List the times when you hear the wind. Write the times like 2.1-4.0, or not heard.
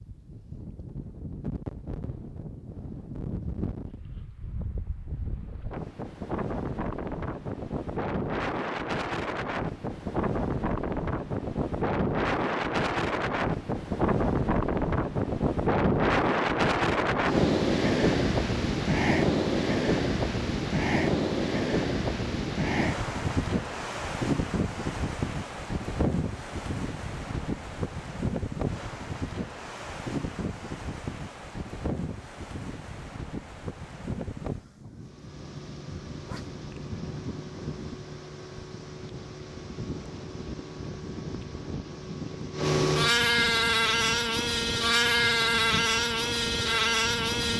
0.0-47.5.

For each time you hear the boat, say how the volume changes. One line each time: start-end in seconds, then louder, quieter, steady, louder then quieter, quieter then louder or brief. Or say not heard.
35.0-47.5 louder.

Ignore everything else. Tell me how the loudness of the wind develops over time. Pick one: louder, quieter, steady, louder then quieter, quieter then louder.
louder then quieter.